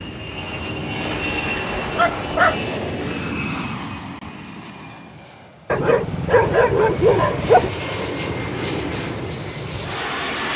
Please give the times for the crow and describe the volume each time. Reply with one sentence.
You can't hear the crow here.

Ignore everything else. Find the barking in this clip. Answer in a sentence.
You can hear the barking from 1.1 to 2.5 s and from 5.7 to 7.7 s.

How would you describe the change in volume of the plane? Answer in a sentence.
The volume of the plane goes down, then up.